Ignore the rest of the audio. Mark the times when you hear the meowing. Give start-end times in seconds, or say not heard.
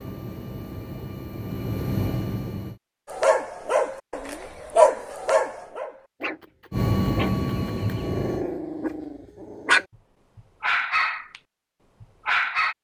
not heard.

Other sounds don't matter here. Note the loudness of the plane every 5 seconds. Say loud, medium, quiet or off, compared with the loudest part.
medium, loud, off.